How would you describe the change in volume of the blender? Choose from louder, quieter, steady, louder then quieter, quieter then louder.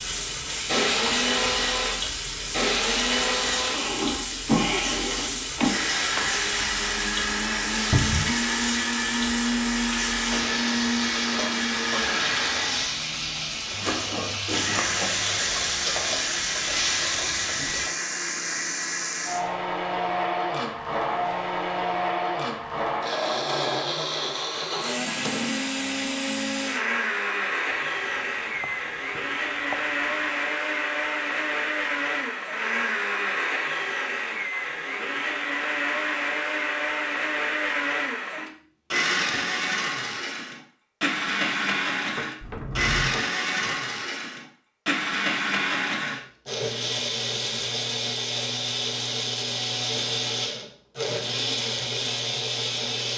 steady.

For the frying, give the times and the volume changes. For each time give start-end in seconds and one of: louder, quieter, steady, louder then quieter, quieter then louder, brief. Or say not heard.
0.0-17.9 steady.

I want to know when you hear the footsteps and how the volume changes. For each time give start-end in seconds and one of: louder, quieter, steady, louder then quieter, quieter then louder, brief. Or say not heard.
not heard.